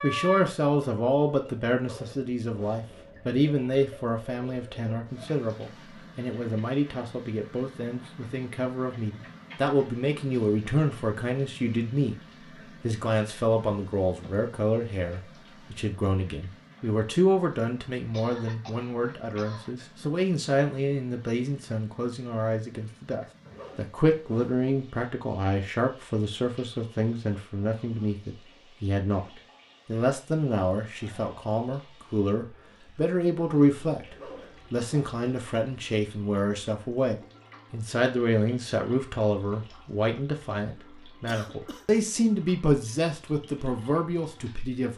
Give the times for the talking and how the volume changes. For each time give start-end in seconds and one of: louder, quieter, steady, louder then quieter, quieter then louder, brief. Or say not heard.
0.0-12.2 quieter then louder
12.8-44.9 steady.